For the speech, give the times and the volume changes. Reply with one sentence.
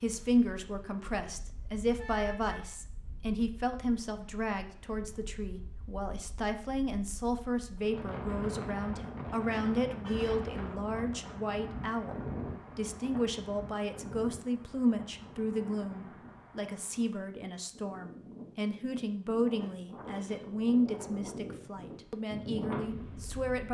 You can hear the speech from 0.0 to 23.6 s, at a steady volume.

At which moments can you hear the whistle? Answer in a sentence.
The whistle can't be heard in this clip.